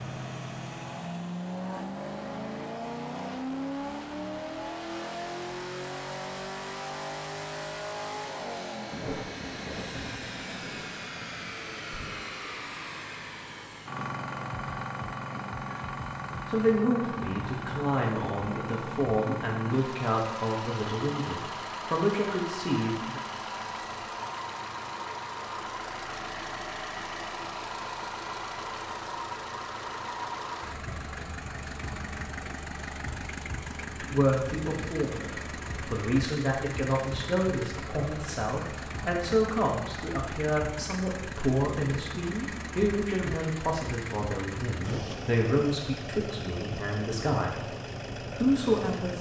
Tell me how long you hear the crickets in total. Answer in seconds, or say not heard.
not heard.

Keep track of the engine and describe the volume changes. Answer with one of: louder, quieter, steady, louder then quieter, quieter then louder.
steady.